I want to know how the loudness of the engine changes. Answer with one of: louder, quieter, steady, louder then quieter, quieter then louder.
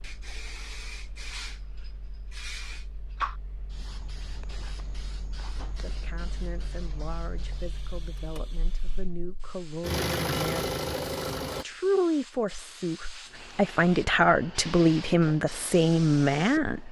louder.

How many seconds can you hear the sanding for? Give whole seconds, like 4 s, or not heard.
not heard.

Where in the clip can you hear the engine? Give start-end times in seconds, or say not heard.
0.0-11.7.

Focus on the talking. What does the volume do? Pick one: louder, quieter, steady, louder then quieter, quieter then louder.
louder.